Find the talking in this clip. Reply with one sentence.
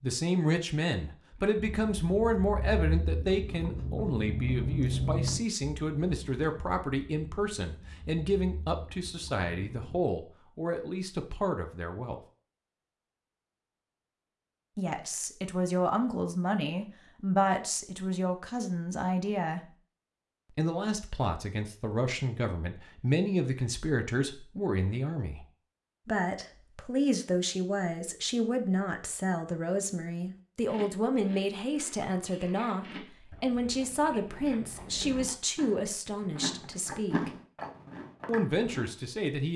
You can hear the talking from 0.0 to 12.2 s, from 14.8 to 19.6 s, from 20.6 to 25.4 s, from 26.1 to 37.3 s and from 38.2 to 39.5 s.